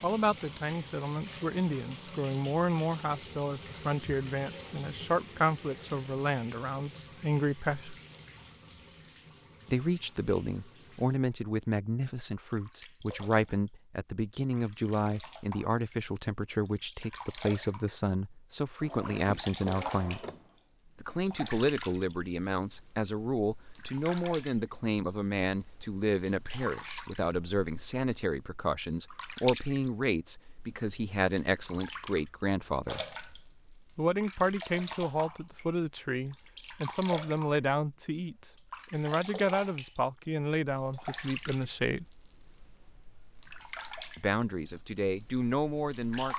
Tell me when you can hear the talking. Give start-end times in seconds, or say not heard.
0.0-8.0, 9.7-20.2, 20.9-33.0, 34.0-42.0, 44.1-46.3.